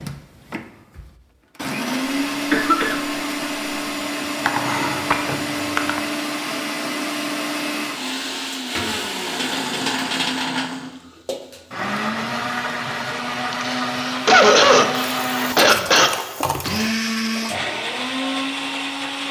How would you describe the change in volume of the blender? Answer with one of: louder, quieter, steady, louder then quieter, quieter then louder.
steady.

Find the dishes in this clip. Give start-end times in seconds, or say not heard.
4.4-6.0, 15.1-16.9.